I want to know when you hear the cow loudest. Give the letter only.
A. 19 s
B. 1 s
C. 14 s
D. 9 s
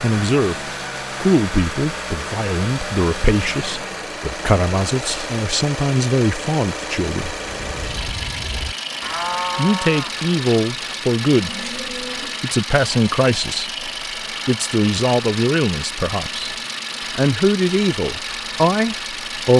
D.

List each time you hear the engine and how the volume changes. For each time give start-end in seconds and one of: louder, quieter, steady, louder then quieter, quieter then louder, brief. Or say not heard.
0.0-19.5 steady.